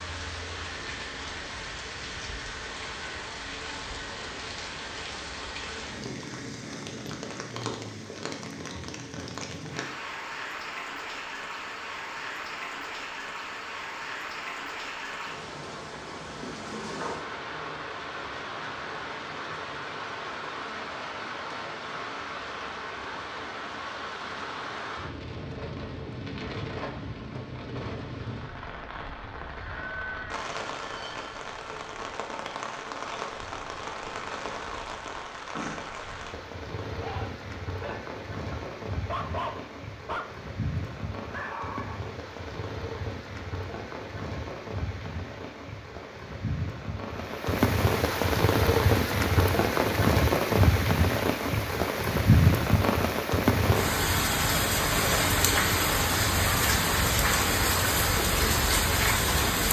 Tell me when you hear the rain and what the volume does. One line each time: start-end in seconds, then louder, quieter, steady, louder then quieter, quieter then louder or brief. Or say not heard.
0.0-59.6 louder.